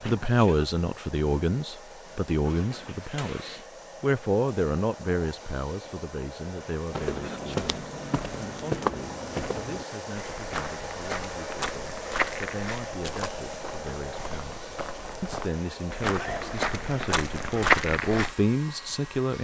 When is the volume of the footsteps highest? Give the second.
18 s.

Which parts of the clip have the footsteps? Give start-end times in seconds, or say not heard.
6.9-18.4.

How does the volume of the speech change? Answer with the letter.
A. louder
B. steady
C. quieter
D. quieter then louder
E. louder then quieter
D.